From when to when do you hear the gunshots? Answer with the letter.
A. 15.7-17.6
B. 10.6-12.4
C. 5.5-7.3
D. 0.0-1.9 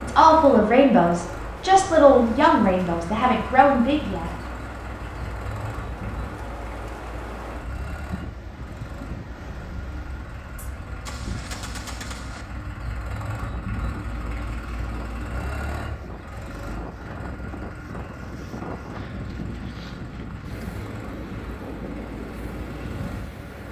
B.